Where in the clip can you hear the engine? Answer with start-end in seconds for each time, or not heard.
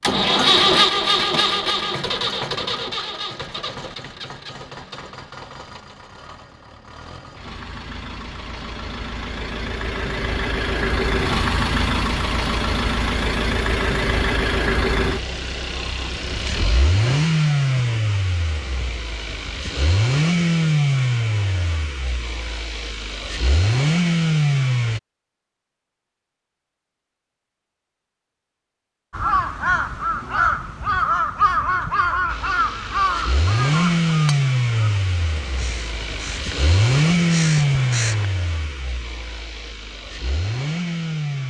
0.0-25.0, 32.2-41.4.